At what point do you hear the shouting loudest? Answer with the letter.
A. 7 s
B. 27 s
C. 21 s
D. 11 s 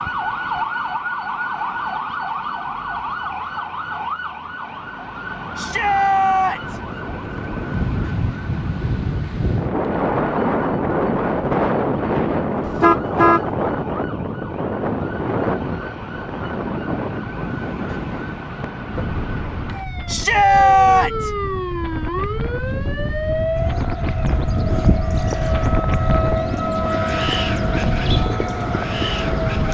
C.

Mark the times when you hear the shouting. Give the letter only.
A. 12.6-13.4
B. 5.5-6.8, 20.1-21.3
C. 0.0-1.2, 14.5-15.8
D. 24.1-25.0
B.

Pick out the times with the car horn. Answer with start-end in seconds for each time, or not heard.
12.6-13.4.